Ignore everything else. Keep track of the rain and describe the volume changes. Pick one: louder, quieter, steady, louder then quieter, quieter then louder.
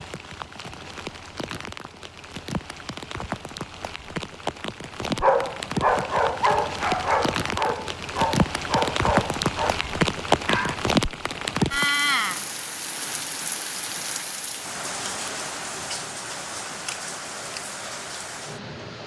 louder then quieter.